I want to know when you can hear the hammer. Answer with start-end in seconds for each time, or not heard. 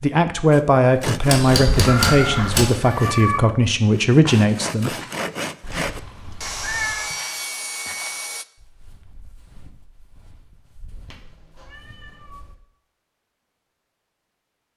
1.2-2.8.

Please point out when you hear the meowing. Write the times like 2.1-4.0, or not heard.
1.9-3.4, 5.6-7.1, 11.1-12.4.